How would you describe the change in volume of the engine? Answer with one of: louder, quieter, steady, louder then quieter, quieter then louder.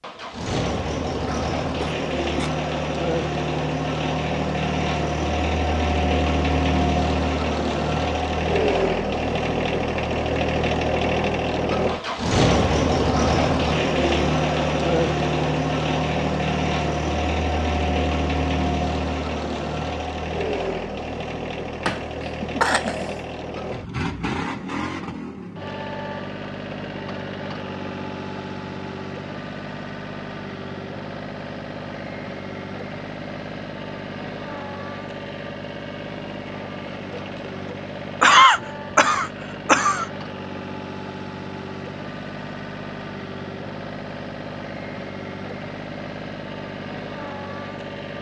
quieter.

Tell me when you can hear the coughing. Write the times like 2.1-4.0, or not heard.
1.2-2.5, 21.9-23.2, 38.2-40.0.